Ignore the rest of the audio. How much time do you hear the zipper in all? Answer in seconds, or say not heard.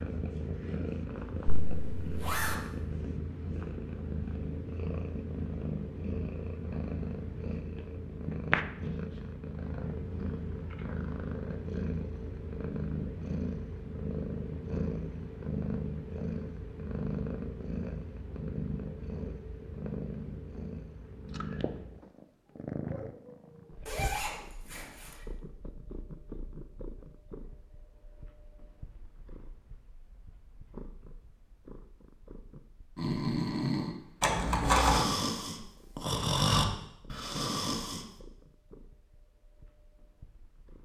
3 s.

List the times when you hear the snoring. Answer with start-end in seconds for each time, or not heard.
33.0-38.0.